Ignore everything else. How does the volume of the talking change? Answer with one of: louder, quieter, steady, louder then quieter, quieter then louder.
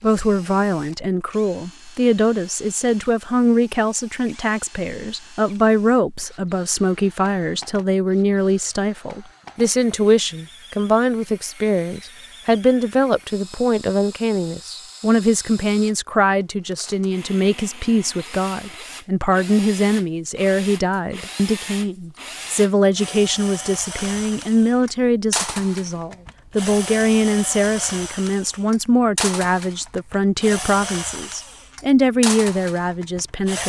steady.